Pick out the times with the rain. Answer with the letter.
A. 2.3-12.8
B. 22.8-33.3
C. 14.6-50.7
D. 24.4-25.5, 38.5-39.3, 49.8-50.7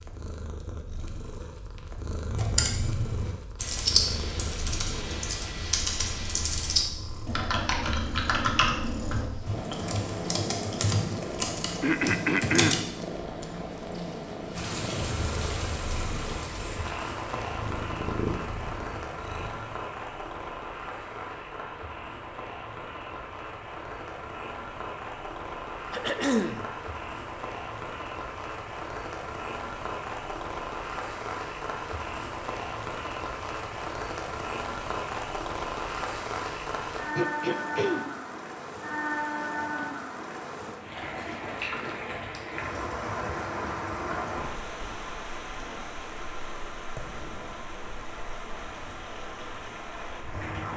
C.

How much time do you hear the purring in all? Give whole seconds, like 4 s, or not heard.
20 s.